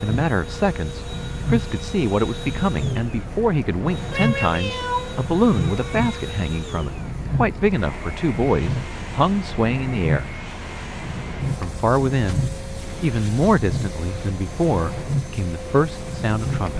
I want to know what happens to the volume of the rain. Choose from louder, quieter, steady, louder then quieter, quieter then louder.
steady.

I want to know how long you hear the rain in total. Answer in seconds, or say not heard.
17 s.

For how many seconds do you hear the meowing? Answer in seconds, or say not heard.
2 s.